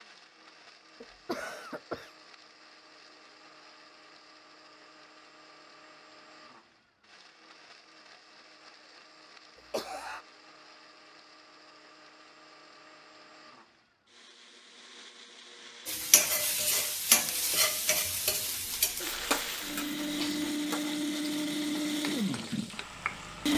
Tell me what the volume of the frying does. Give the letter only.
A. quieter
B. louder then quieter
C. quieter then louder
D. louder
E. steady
A.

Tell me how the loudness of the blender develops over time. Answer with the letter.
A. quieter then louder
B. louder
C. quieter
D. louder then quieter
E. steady
B.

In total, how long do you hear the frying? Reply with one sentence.
You can hear the frying for 8 seconds altogether.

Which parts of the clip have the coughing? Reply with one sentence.
You can hear the coughing from 1.0 to 2.1 s, from 9.6 to 10.2 s and from 18.6 to 20.5 s.